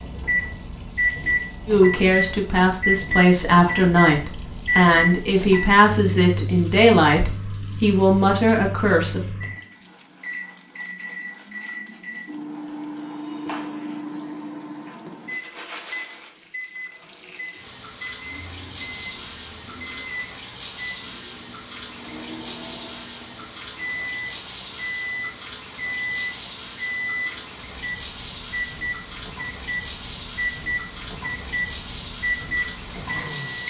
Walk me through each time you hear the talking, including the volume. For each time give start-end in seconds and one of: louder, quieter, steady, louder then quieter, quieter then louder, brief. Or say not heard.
1.6-9.2 steady.